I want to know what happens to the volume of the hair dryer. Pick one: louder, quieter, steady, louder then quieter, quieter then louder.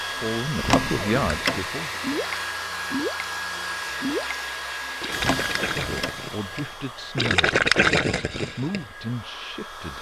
quieter.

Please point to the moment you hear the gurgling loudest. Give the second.
8 s.